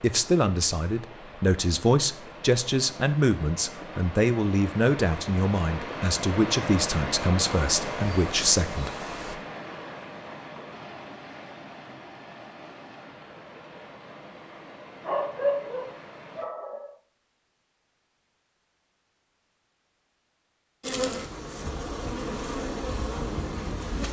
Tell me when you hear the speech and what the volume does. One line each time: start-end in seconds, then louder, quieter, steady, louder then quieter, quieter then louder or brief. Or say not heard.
0.0-8.9 steady.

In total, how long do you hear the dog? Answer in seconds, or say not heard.
2 s.